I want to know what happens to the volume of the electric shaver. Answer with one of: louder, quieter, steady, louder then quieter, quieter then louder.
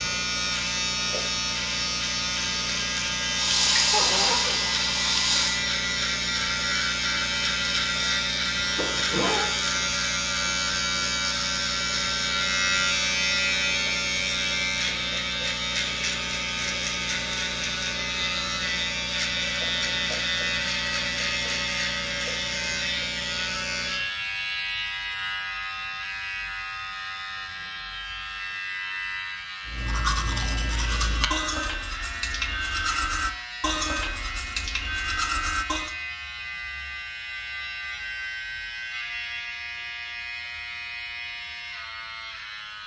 quieter.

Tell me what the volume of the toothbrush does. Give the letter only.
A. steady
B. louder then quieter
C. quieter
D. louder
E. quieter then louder
A.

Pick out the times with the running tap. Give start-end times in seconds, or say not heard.
3.3-5.7.